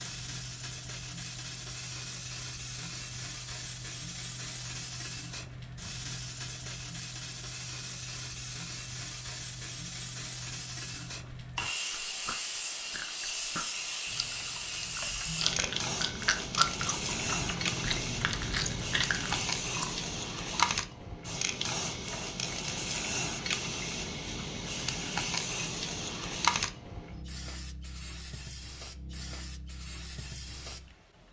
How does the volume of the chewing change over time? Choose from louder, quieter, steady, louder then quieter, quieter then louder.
louder.